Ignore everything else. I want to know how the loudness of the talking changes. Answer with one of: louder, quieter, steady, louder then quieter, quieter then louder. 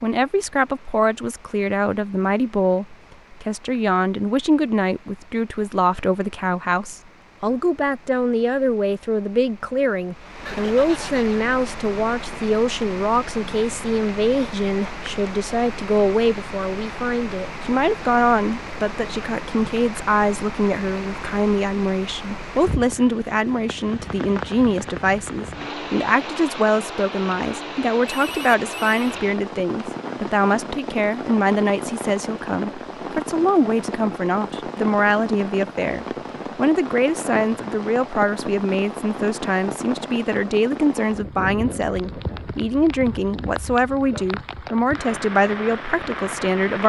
steady.